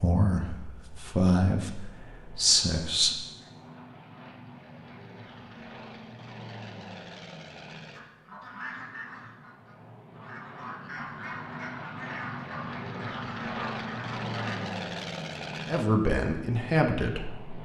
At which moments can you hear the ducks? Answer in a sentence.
The ducks can be heard from 8.0 to 14.7 s.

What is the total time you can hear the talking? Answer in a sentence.
You can hear the talking for 5 seconds altogether.